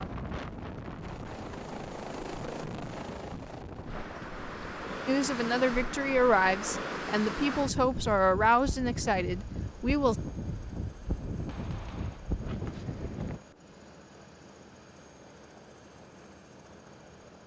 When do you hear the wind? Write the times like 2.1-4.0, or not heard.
0.0-13.4.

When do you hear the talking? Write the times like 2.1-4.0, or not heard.
5.0-10.2.